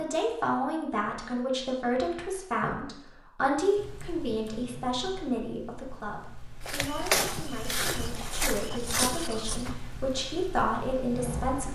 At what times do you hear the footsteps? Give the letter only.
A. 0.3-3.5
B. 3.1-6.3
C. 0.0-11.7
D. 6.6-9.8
D.